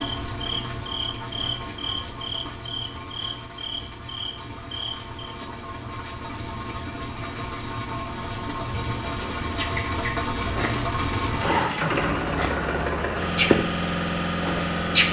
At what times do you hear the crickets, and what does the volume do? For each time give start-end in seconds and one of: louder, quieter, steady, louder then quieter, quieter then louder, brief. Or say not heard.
0.0-15.0 quieter then louder.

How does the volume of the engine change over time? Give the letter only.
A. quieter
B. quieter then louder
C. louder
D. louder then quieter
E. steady
C.